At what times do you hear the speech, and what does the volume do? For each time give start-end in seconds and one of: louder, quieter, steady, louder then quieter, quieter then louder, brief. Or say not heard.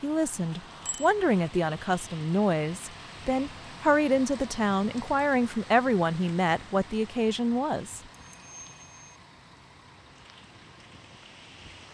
0.0-8.0 steady.